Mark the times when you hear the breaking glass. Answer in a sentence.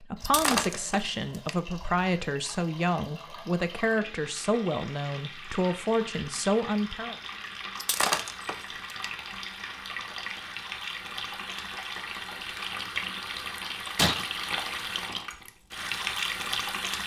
You can hear the breaking glass from 0.2 to 1.6 s, from 7.8 to 9.1 s and from 13.9 to 14.5 s.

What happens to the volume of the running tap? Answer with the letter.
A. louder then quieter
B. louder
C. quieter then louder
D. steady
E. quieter
B.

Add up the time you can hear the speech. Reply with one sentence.
You can hear the speech for 7 seconds altogether.